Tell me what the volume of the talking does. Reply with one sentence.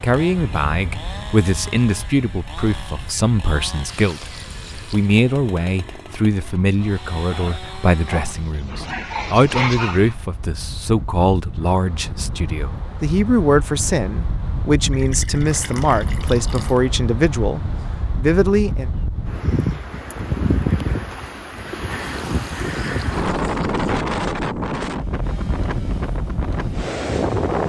The volume of the talking stays about the same.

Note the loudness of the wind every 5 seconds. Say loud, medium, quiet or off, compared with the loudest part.
quiet, quiet, medium, medium, loud, loud.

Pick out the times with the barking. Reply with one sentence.
You can hear the barking from 6.2 to 10.1 s.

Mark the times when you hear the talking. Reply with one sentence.
You can hear the talking from 0.0 to 18.9 s.